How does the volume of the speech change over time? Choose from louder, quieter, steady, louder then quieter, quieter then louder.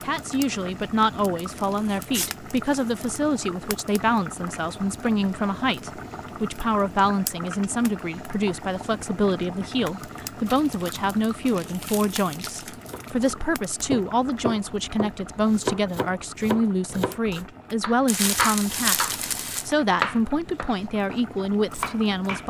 steady.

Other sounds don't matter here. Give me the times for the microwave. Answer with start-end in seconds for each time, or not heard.
not heard.